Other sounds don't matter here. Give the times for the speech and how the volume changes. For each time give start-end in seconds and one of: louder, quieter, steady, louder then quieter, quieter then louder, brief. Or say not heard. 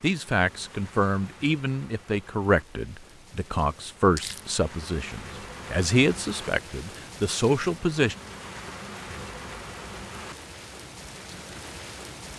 0.0-8.2 steady.